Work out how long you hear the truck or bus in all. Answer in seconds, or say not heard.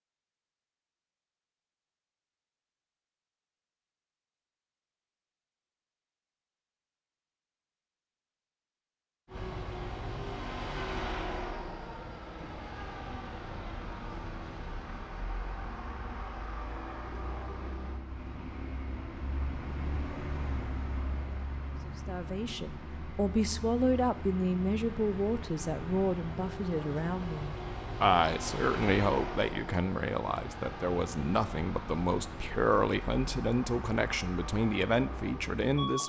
27 s.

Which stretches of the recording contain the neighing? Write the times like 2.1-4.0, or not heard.
not heard.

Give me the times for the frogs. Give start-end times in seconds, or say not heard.
not heard.